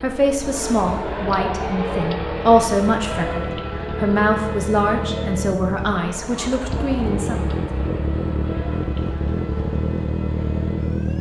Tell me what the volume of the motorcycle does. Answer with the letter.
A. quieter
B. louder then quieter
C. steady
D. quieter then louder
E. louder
E.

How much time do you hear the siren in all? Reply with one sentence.
You can hear the siren for 11 seconds altogether.